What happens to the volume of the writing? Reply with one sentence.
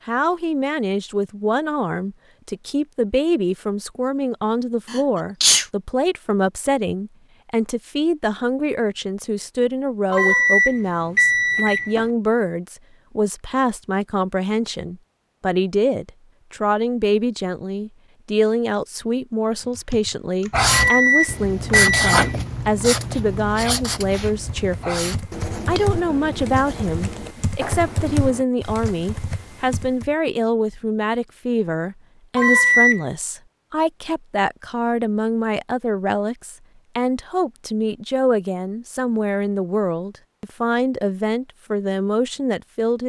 The volume of the writing goes down.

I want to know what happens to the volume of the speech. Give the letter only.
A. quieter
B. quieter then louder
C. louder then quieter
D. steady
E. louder
D.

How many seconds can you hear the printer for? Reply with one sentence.
The printer can't be heard in this clip.